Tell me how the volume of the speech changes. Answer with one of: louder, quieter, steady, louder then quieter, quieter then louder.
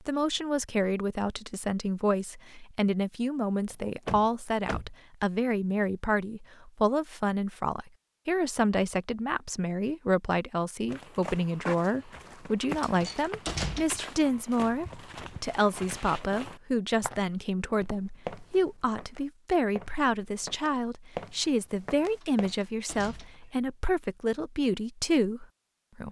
steady.